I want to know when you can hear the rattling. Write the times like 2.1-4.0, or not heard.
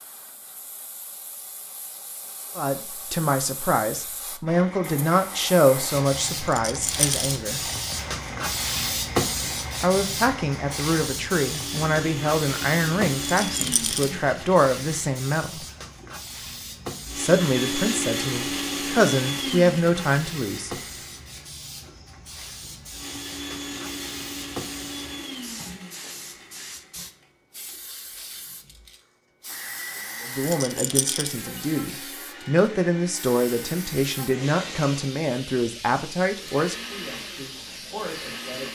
6.5-7.3, 13.4-14.1, 30.4-31.4.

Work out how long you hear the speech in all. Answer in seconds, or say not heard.
23 s.